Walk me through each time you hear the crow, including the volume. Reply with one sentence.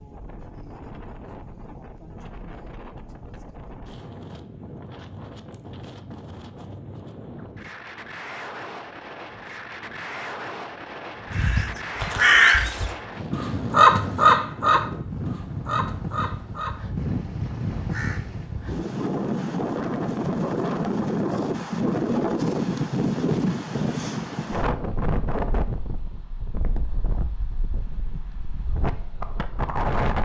The crow can be heard from 11.3 to 18.5 s, getting quieter.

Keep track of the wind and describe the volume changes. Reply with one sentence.
The loudness of the wind goes up, then down.